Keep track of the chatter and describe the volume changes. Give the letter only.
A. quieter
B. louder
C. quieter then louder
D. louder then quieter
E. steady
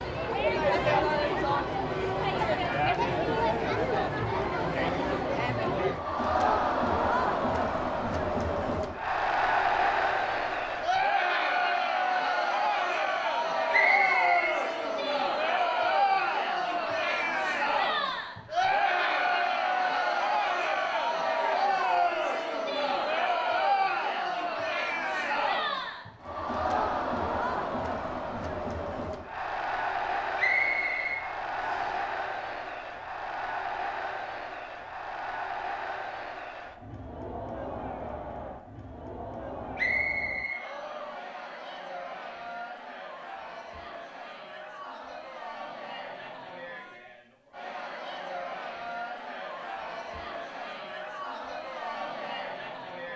A.